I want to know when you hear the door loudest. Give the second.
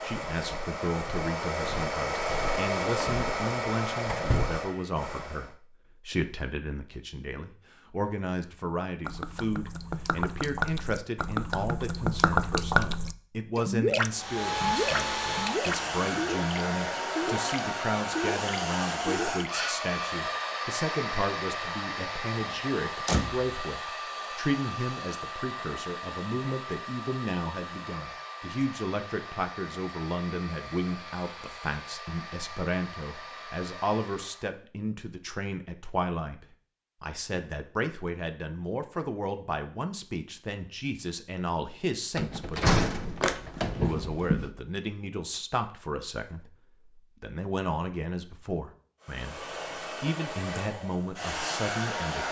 43 s.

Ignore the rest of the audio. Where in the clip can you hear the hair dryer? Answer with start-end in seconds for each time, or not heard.
0.0-5.5, 14.1-34.5, 49.0-52.2.